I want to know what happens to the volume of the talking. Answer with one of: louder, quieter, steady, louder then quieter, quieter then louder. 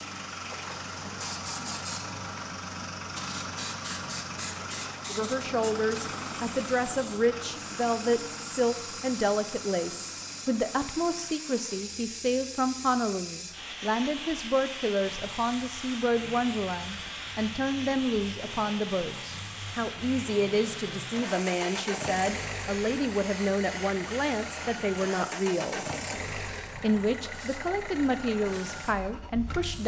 steady.